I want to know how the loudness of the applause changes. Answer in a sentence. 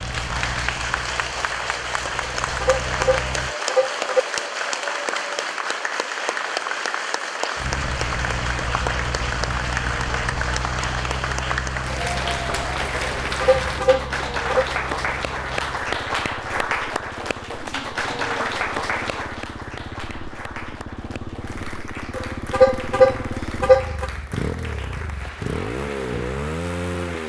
The volume of the applause goes down.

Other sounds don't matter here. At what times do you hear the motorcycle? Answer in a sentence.
You can hear the motorcycle from 0.0 to 3.5 s and from 7.5 to 27.2 s.